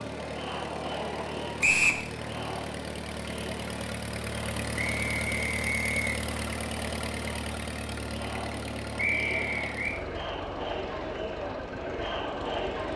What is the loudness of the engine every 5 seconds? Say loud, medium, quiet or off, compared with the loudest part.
loud, loud, medium.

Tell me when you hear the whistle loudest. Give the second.
2 s.